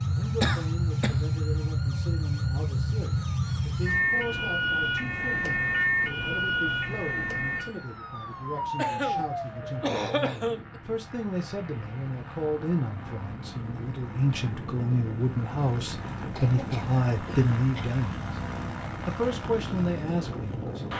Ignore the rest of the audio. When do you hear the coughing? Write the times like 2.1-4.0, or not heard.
0.4-1.2, 8.8-10.8, 16.4-18.0.